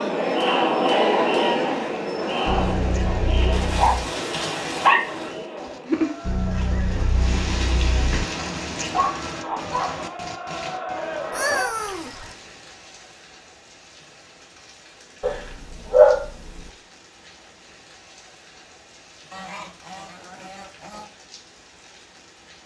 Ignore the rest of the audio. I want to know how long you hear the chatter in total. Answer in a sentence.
You can hear the chatter for 12 seconds altogether.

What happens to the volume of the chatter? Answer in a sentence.
The loudness of the chatter goes down, then up.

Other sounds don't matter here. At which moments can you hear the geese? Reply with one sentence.
The geese can be heard from 2.5 to 4.1 s, from 6.2 to 8.2 s, from 11.3 to 12.3 s and from 19.3 to 21.1 s.